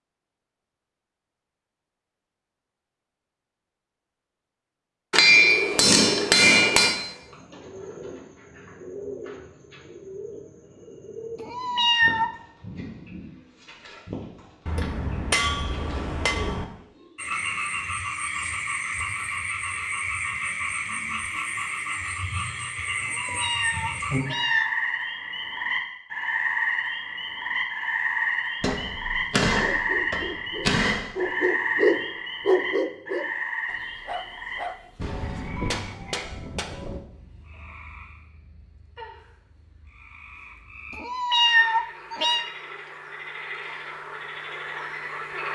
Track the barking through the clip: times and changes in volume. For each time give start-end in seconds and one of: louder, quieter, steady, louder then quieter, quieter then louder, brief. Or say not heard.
29.6-35.0 louder then quieter.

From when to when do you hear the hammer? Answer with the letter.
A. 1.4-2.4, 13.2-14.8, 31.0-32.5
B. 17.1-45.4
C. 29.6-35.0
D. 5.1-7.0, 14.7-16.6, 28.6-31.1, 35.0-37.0
D.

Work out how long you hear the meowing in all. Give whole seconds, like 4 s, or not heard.
4 s.